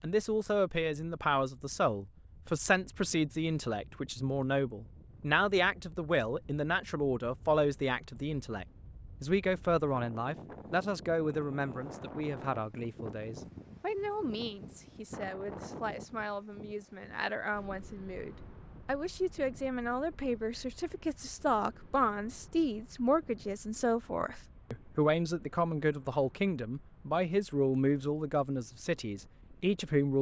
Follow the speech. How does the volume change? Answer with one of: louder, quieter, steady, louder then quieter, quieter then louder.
quieter then louder.